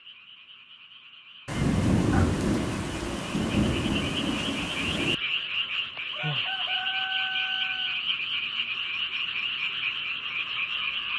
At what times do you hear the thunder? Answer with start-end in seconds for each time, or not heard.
1.4-5.2.